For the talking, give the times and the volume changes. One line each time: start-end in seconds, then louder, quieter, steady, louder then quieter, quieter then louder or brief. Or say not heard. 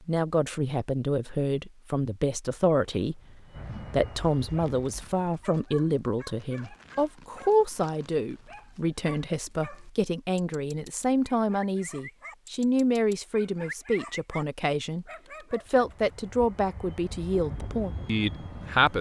0.1-18.9 steady.